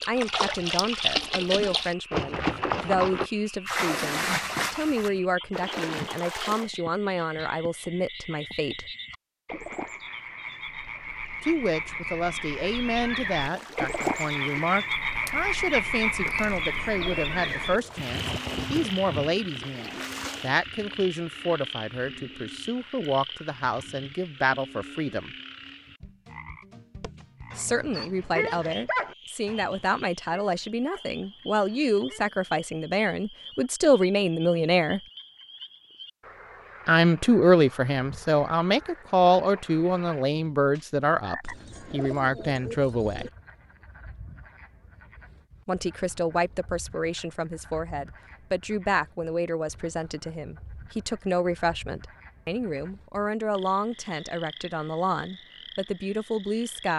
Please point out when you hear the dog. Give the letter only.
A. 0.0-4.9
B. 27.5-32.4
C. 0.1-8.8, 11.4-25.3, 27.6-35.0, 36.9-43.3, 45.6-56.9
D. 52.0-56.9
B.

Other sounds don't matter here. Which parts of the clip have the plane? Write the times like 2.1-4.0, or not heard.
not heard.